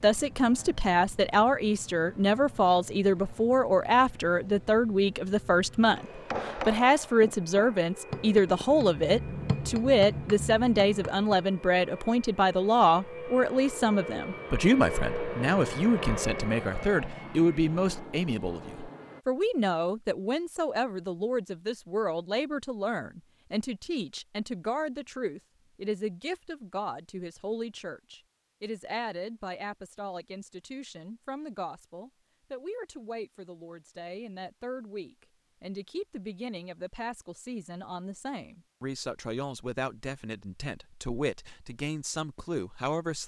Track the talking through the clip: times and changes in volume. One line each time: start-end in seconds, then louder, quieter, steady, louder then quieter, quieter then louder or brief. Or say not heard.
0.0-43.2 quieter.